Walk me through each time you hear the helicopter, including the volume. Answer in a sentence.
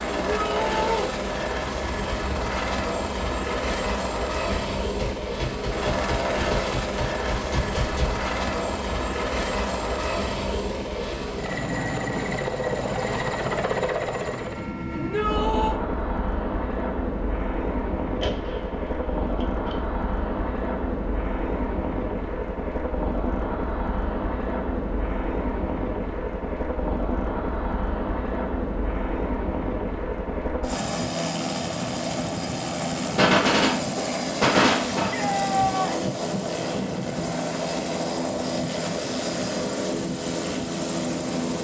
The helicopter can be heard from 0.0 to 41.5 s, at a steady volume.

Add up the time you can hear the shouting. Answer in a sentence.
You can hear the shouting for 3 seconds altogether.